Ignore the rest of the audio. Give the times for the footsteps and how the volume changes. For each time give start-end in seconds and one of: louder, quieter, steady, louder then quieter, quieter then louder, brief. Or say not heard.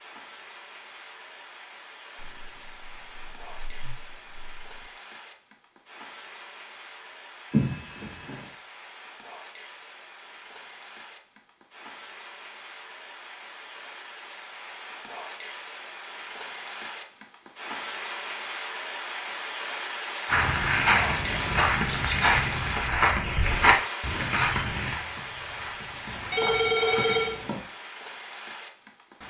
20.2-27.2 quieter.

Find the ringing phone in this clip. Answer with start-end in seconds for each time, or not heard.
7.5-8.4, 26.1-27.6.